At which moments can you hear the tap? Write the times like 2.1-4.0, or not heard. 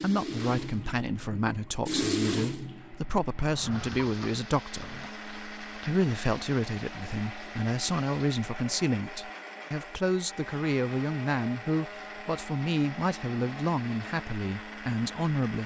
0.0-8.3.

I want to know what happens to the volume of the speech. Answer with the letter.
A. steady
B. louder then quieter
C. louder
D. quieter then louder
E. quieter
A.